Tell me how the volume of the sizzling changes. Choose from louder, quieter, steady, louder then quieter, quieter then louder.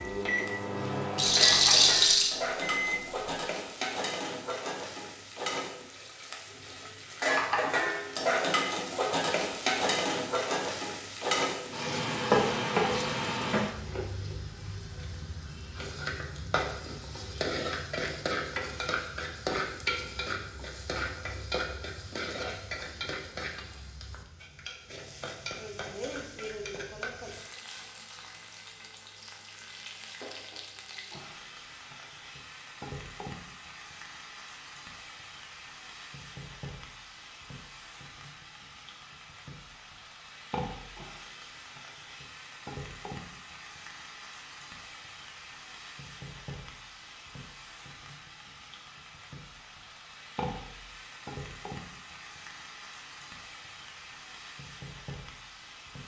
quieter.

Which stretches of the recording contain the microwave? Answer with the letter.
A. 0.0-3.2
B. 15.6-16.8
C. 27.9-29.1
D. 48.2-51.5
A.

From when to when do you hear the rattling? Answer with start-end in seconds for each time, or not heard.
1.1-2.4.